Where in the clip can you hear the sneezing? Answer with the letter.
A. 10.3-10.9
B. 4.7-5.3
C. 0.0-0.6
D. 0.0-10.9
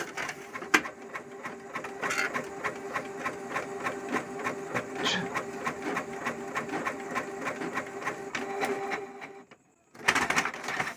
B.